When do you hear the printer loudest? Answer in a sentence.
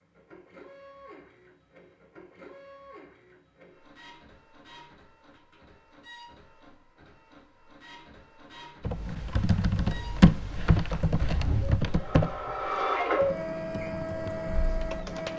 The volume of the printer peaks at 13 seconds.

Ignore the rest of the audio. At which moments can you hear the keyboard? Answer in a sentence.
The keyboard can be heard from 8.8 to 15.3 s.